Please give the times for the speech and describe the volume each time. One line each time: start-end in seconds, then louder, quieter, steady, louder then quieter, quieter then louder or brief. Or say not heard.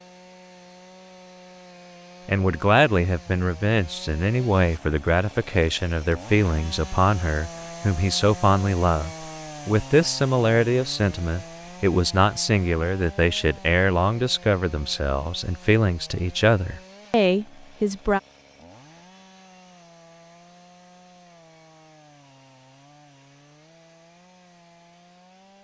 2.2-18.2 steady.